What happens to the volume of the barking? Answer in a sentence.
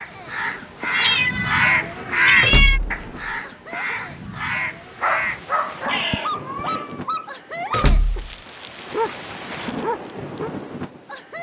The volume of the barking stays about the same.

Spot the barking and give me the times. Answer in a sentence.
You can hear the barking from 5.0 to 10.5 s.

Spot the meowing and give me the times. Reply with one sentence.
The meowing can be heard from 0.9 to 2.8 s and from 6.3 to 7.2 s.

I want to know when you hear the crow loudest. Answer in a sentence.
The loudest moment of the crow is at 2 seconds.